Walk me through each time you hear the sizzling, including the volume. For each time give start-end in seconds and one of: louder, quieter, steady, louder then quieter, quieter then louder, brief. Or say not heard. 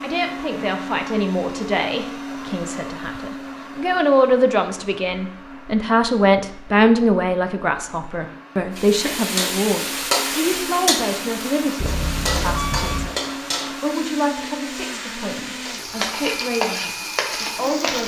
8.8-18.0 quieter then louder.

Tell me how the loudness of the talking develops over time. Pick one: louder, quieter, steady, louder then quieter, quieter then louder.
louder then quieter.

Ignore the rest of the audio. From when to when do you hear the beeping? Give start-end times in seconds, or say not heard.
11.8-13.1.